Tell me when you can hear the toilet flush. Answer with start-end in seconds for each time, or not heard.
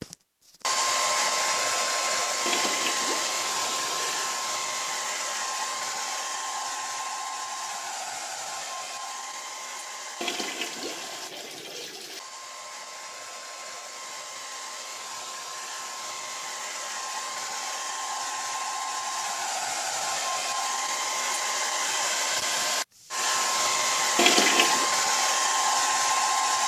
2.5-4.4, 10.2-12.2, 24.1-24.9.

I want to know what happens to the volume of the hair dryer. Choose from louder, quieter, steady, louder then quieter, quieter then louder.
quieter then louder.